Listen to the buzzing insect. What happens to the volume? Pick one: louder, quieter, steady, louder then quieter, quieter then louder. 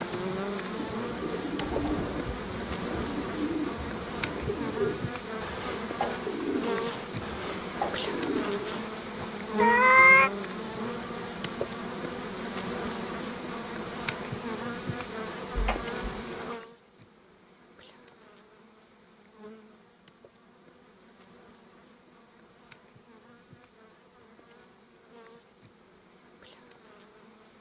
quieter.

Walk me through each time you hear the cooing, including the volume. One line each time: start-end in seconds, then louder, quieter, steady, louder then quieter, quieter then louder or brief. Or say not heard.
0.8-9.2 steady.